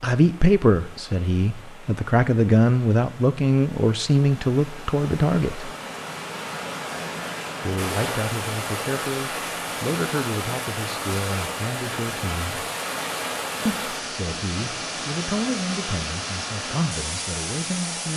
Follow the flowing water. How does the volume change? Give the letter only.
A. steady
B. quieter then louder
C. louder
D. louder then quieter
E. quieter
C.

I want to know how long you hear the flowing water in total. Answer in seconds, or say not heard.
18 s.